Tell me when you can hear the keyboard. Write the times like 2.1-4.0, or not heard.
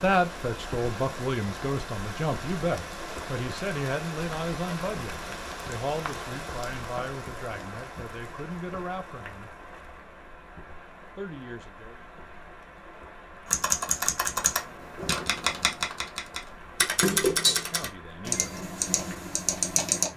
13.4-20.1.